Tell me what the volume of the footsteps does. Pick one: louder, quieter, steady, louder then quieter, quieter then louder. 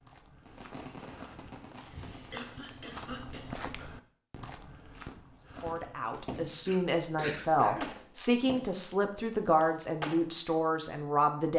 louder then quieter.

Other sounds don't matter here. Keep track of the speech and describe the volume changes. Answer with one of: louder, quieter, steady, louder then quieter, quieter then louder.
steady.